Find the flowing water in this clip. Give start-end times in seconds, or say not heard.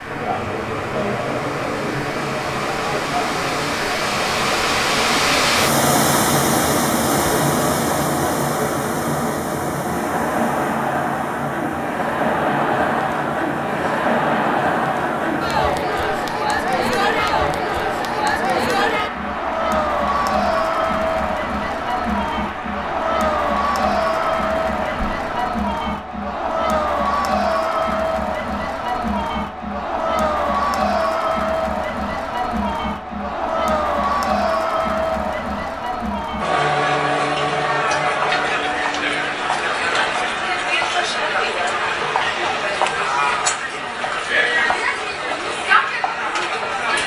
0.0-25.5.